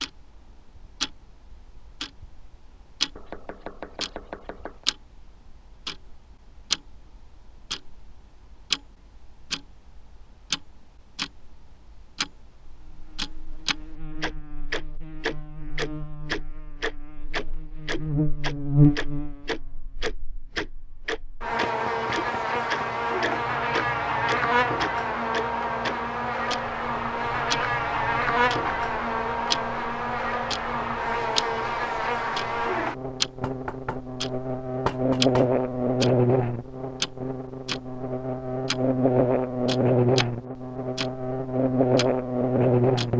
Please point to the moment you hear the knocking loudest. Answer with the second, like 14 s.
35 s.